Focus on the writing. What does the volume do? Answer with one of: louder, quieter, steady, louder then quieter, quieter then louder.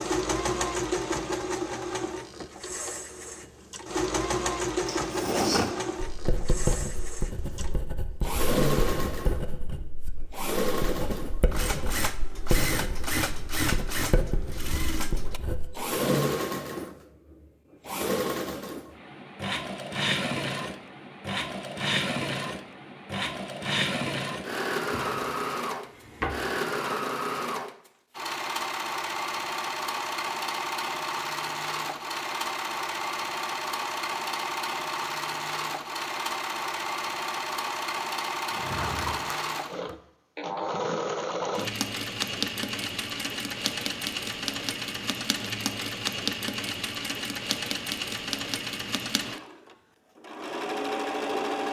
steady.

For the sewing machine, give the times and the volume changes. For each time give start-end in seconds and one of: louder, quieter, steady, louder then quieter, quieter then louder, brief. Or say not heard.
0.0-51.6 steady.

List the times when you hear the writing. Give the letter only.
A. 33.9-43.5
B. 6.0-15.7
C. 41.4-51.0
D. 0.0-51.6
B.